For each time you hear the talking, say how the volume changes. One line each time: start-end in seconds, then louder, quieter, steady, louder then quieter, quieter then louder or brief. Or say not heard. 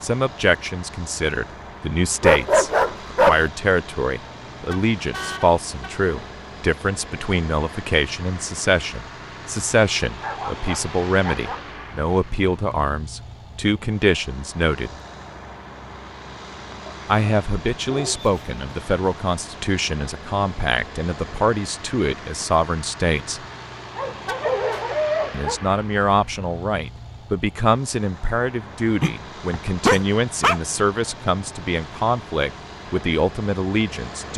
0.0-14.9 steady
17.1-23.4 steady
25.3-34.3 steady.